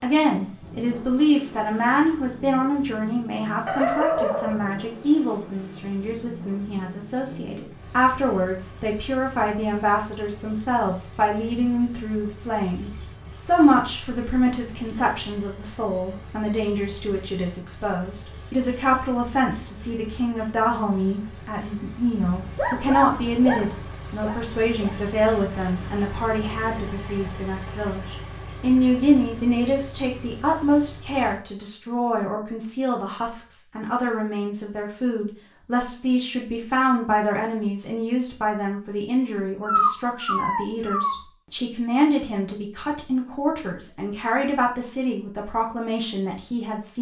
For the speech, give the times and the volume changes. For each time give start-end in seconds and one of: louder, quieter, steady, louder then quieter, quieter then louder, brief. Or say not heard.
0.0-46.9 steady.